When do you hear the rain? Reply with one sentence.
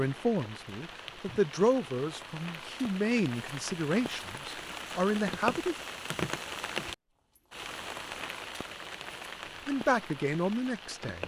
You can hear the rain from 0.0 to 11.2 s.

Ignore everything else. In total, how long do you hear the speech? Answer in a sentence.
You can hear the speech for 7 seconds altogether.